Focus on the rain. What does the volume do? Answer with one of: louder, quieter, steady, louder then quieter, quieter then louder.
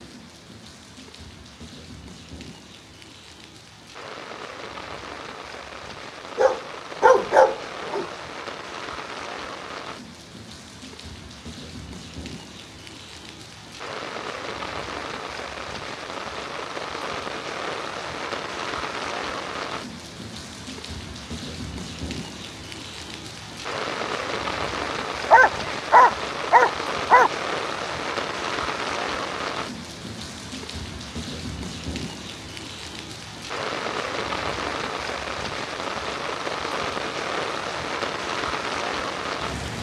louder.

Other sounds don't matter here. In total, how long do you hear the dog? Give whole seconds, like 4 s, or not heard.
4 s.